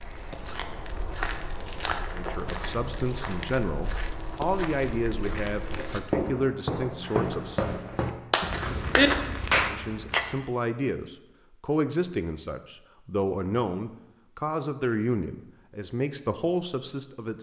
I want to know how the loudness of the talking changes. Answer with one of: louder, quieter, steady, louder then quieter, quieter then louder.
steady.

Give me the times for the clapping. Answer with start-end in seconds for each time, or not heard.
8.3-10.2.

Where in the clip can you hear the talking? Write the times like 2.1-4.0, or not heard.
2.1-7.7, 9.7-17.3.